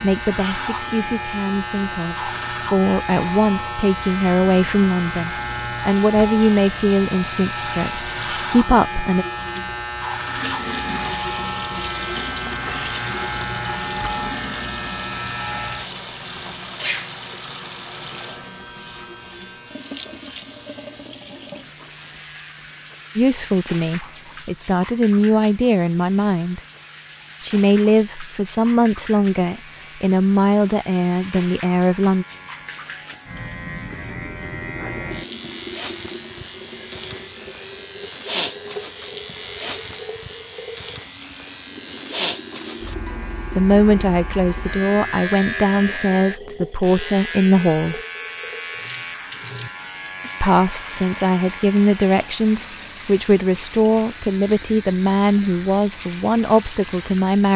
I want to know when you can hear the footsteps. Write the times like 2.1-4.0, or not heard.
not heard.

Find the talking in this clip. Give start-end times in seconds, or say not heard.
0.0-9.2, 23.1-26.6, 27.4-32.2, 43.5-48.0, 50.4-57.5.